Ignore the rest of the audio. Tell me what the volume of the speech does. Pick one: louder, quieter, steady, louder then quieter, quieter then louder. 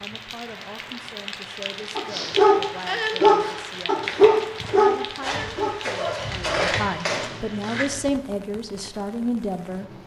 louder.